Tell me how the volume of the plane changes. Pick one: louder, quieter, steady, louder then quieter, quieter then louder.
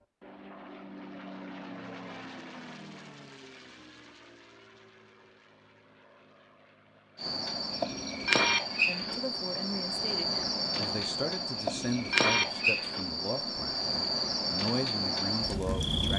quieter.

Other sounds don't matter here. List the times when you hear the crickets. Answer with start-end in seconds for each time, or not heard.
7.2-16.1.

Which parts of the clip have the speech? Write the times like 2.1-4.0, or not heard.
8.8-16.1.